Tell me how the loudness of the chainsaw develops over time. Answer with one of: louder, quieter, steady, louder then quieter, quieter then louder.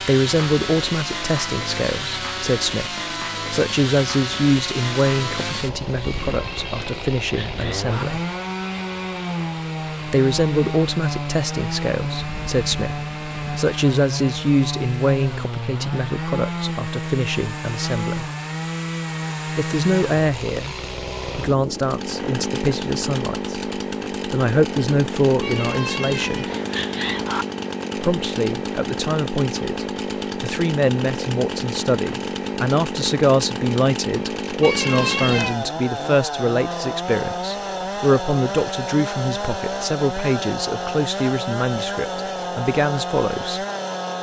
steady.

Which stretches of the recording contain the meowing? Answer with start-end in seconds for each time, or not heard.
6.0-8.1, 25.4-27.4, 34.6-35.6.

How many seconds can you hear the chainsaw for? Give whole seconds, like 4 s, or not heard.
44 s.